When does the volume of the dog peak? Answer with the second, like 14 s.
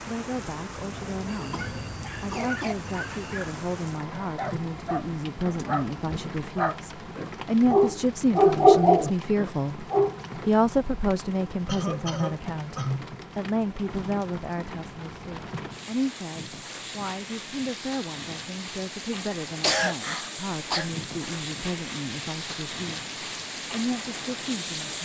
9 s.